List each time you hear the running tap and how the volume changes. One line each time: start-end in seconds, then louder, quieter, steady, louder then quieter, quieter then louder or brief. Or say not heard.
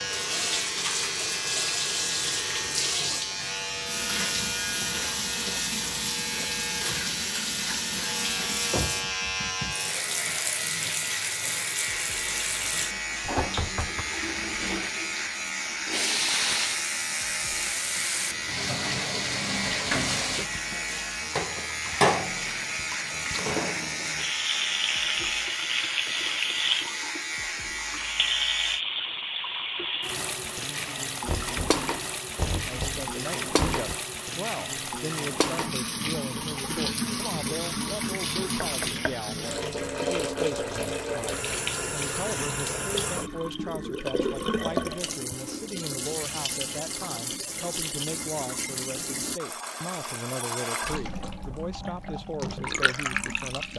0.0-53.7 steady.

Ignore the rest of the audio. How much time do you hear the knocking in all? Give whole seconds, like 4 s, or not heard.
4 s.